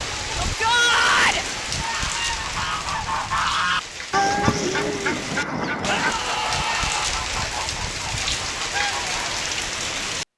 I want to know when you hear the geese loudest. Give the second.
4 s.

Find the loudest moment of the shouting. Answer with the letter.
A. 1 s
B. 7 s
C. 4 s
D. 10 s
A.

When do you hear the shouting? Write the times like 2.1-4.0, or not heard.
0.4-1.4, 5.8-7.1.